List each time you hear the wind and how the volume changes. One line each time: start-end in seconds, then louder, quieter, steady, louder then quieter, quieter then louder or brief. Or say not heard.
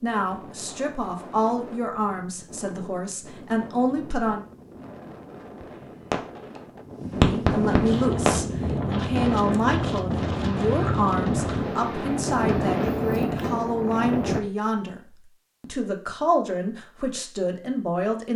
0.0-14.4 louder.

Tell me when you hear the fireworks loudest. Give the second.
7 s.